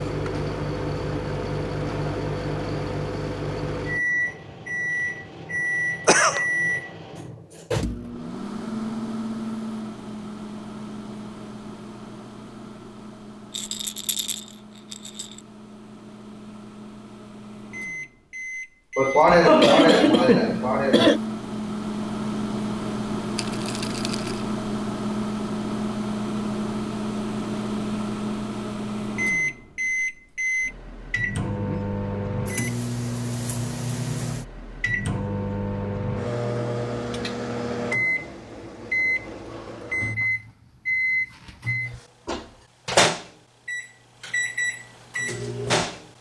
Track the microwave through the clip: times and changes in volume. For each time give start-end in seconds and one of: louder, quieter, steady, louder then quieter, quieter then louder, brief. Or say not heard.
0.0-46.1 quieter then louder.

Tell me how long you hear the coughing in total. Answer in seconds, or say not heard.
3 s.